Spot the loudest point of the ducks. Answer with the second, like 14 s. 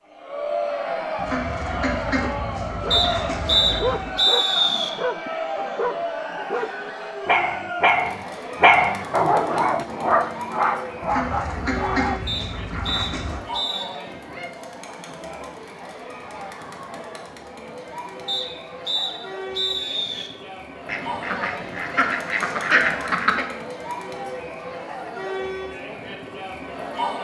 23 s.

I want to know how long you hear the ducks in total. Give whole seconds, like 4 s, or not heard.
8 s.